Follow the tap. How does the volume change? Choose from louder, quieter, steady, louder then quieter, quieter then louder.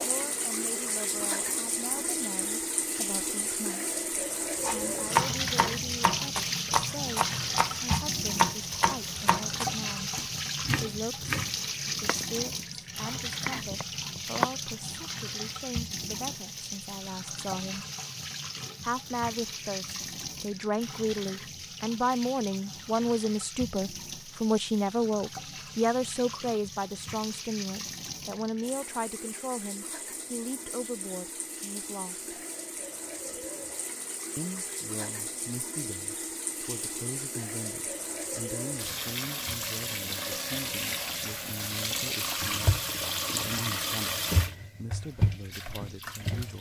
quieter then louder.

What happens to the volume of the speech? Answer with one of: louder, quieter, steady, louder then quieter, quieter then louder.
louder then quieter.